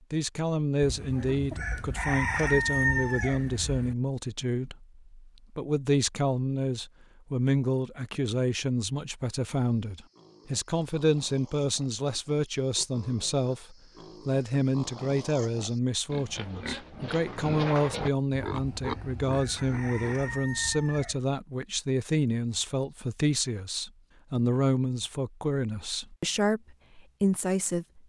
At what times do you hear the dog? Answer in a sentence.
The dog can't be heard in this clip.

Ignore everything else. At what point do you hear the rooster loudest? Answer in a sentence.
The volume of the rooster peaks at 3 seconds.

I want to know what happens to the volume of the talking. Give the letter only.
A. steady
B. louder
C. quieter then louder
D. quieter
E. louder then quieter
A.